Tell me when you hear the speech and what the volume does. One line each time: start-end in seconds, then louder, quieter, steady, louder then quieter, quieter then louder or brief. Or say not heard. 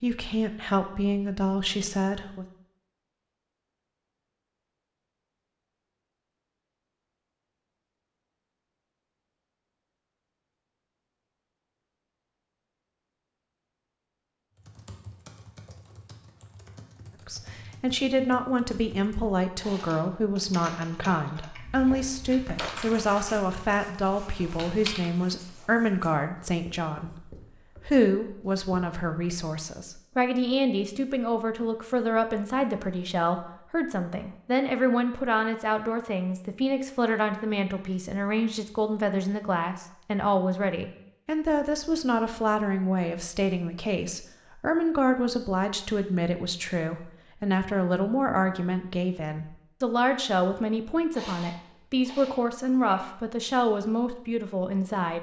0.0-2.5 brief
17.2-55.1 steady.